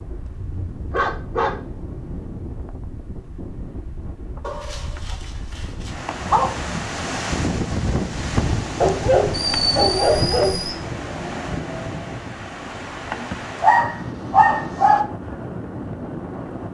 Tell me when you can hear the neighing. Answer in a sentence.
You can't hear the neighing here.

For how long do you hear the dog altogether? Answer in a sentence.
The dog can be heard for 8 seconds in total.